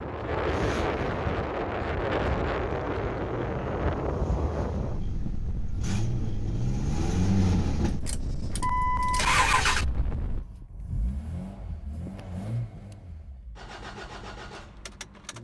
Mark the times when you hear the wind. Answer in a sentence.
You can hear the wind from 0.0 to 10.4 s.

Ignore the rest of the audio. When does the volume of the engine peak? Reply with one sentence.
The loudest moment of the engine is at 9 seconds.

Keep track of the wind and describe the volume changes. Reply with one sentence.
The loudness of the wind goes down.